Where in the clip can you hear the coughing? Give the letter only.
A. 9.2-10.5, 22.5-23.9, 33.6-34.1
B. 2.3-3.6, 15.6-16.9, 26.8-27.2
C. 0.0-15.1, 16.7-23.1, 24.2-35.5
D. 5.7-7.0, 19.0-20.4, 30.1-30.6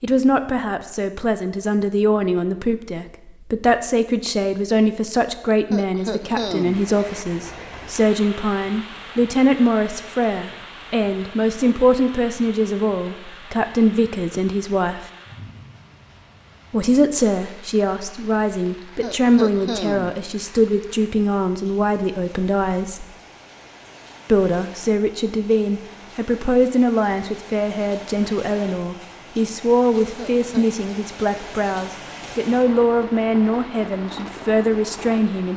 D.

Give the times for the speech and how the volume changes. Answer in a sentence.
The speech can be heard from 0.0 to 15.1 s, at a steady volume; from 16.7 to 23.1 s, at a steady volume; and from 24.2 to 35.5 s, at a steady volume.